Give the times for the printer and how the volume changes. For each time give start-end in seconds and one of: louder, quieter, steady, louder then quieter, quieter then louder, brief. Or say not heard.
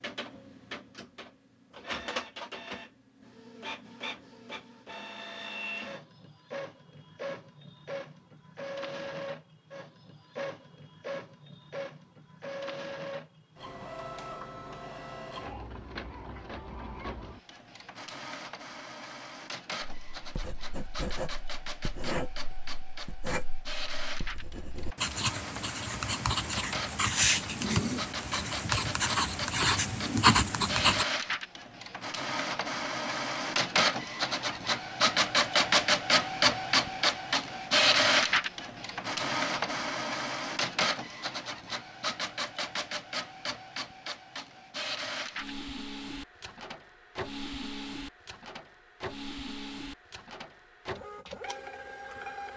0.0-52.5 louder then quieter.